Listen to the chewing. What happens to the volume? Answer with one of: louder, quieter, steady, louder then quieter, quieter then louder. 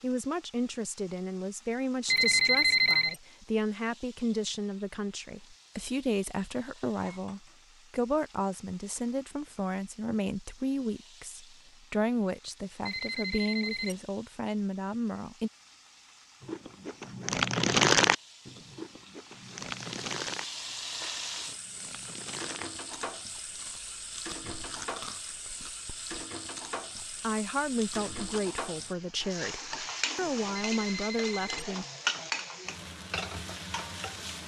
quieter.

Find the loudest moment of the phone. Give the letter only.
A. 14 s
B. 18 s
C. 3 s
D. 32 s
C.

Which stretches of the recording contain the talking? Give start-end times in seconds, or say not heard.
0.0-15.5, 27.2-31.9.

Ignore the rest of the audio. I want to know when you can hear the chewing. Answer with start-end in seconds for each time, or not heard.
16.4-28.4.